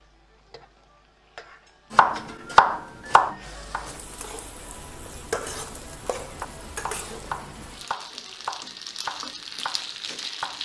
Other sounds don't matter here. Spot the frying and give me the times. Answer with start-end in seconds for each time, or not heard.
0.0-10.5.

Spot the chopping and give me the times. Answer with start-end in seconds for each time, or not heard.
1.9-4.0, 6.2-10.5.